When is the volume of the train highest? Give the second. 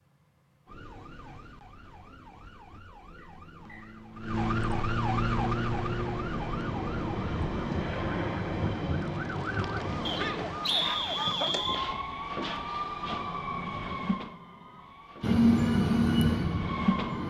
16 s.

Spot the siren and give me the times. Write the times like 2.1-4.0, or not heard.
0.0-17.2.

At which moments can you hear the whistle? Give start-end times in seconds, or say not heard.
3.1-3.9, 10.1-11.8.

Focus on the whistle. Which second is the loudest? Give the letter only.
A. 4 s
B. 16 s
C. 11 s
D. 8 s
C.